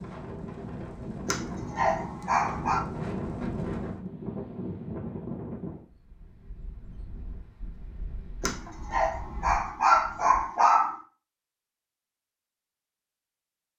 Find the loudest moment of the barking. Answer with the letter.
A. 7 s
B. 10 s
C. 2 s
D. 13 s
B.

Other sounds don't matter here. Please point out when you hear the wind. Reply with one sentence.
You can hear the wind from 0.0 to 10.4 s.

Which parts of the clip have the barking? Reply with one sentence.
You can hear the barking from 1.2 to 2.8 s and from 8.4 to 10.9 s.